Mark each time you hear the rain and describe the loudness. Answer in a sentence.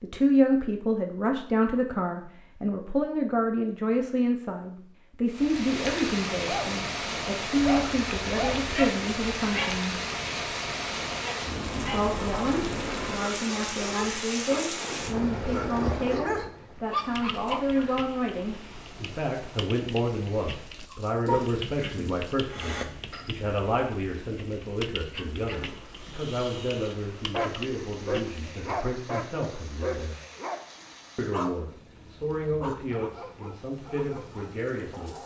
You can hear the rain from 5.3 to 35.2 s, getting quieter.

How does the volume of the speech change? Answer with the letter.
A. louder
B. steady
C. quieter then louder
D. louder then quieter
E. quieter
E.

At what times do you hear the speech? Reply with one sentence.
You can hear the speech from 0.0 to 9.9 s, from 11.9 to 30.2 s and from 31.1 to 35.2 s.